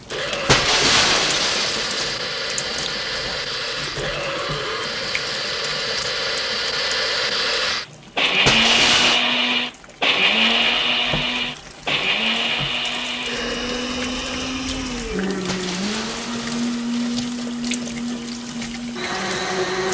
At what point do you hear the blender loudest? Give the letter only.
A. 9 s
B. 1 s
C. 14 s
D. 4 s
A.